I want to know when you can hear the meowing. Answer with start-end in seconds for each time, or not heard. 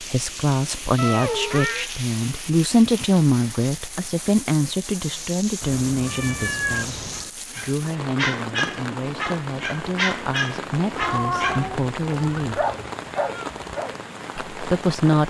0.9-1.9, 5.6-7.3, 10.9-12.9.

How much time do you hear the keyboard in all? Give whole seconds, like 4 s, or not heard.
not heard.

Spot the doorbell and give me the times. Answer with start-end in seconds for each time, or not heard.
not heard.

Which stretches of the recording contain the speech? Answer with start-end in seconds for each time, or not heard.
0.0-12.7, 14.3-15.2.